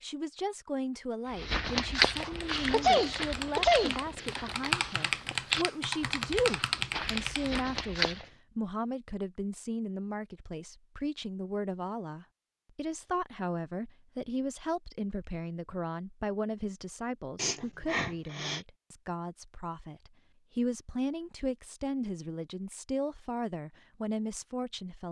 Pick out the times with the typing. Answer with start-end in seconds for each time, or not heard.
2.1-7.7.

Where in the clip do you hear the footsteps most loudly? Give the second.
2 s.